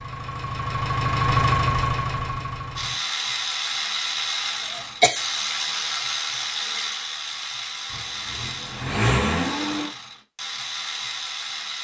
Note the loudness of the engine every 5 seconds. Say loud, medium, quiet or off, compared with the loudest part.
loud, loud, off.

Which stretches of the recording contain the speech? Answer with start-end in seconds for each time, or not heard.
not heard.